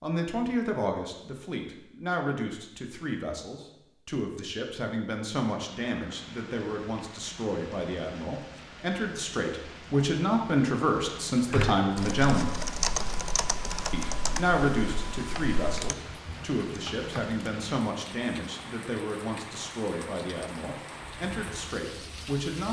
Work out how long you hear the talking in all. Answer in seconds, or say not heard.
21 s.